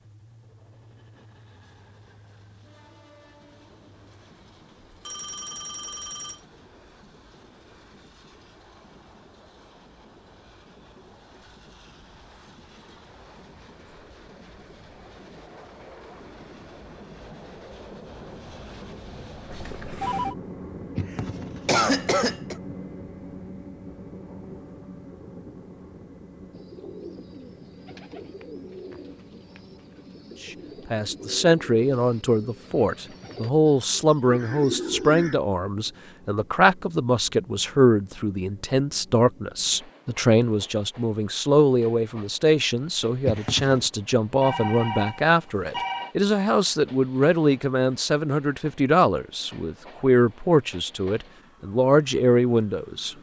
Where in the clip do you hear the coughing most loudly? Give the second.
22 s.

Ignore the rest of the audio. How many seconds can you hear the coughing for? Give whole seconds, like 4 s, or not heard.
2 s.